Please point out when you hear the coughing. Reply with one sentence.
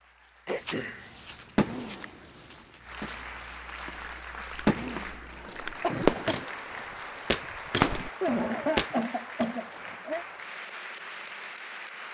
You can hear the coughing from 0.5 to 1.1 s, from 5.8 to 6.5 s and from 8.2 to 10.2 s.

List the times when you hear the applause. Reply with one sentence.
You can hear the applause from 0.0 to 12.0 s.